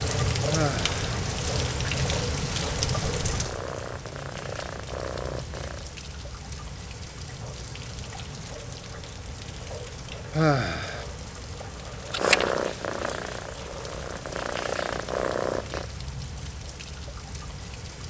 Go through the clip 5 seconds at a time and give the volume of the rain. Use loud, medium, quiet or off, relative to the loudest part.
loud, medium, medium, medium.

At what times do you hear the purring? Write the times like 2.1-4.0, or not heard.
3.2-5.8, 12.1-15.8.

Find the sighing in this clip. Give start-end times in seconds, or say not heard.
0.5-1.1, 10.3-11.1.